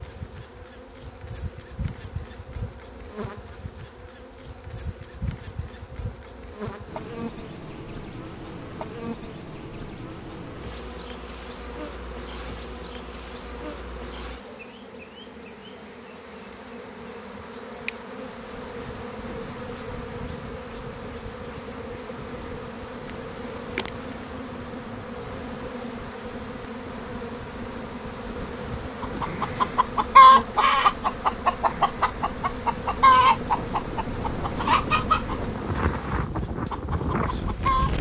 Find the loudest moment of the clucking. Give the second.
30 s.